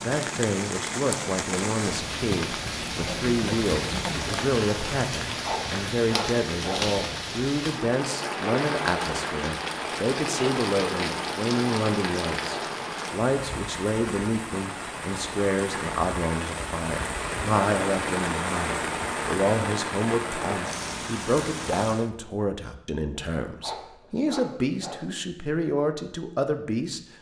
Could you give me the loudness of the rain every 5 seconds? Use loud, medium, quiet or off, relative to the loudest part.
loud, loud, loud, loud, loud, off.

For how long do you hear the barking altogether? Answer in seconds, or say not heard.
3 s.